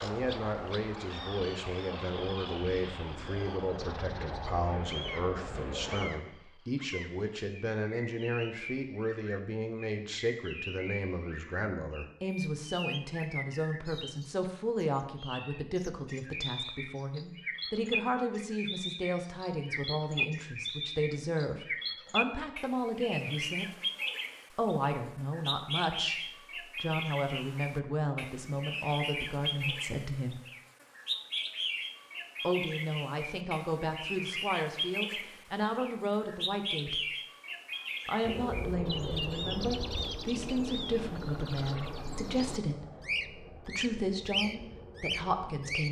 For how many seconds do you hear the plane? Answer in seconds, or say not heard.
14 s.